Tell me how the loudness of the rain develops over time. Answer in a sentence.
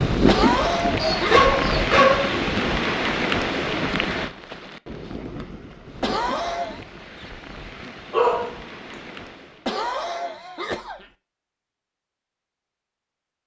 The loudness of the rain goes down.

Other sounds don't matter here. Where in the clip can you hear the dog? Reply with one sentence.
The dog can be heard from 0.9 to 2.4 s and from 8.1 to 8.5 s.